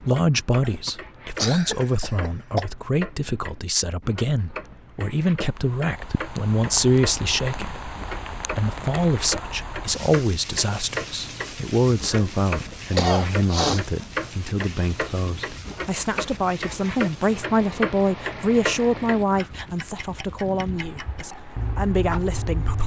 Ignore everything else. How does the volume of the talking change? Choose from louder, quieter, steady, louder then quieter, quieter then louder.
steady.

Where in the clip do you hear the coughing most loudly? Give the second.
13 s.